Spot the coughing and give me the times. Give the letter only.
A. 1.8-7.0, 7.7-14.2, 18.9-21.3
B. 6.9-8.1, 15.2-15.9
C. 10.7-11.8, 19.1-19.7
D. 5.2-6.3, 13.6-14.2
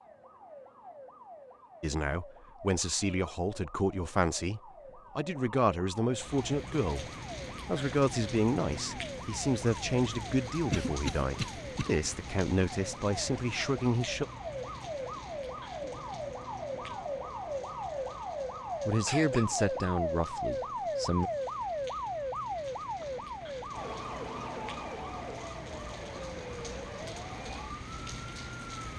C.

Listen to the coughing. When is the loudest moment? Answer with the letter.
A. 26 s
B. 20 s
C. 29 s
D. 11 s
D.